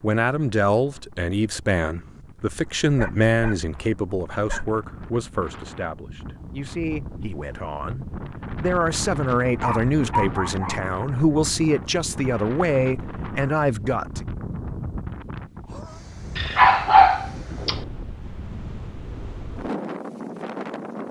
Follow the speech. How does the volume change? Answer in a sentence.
The loudness of the speech goes down, then up.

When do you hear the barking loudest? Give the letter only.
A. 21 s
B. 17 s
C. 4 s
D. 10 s
B.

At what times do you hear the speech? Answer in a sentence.
You can hear the speech from 0.0 to 14.2 s.